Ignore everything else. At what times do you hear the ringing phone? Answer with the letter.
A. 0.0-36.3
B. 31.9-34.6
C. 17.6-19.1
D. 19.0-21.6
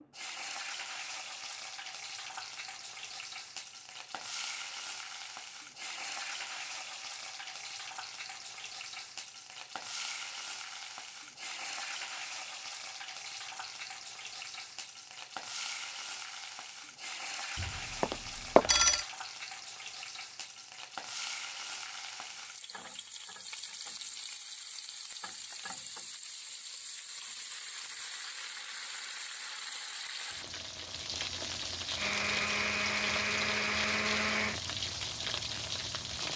C.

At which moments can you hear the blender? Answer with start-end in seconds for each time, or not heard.
31.9-34.6.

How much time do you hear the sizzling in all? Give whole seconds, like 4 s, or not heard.
36 s.